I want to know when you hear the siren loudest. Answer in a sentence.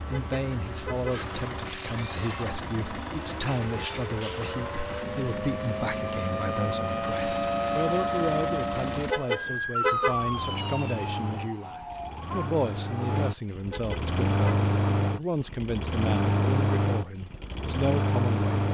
The volume of the siren peaks at 8 seconds.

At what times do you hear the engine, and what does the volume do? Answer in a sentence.
The engine can be heard from 0.0 to 18.6 s, getting louder.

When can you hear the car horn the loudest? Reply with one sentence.
The volume of the car horn peaks at 10 seconds.